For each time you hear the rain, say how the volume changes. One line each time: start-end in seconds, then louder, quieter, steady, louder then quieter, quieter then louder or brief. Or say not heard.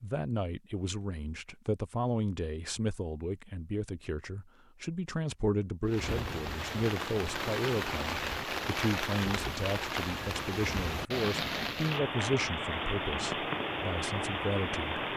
5.8-15.1 steady.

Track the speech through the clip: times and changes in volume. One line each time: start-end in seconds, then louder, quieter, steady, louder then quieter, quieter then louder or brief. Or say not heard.
0.0-15.0 steady.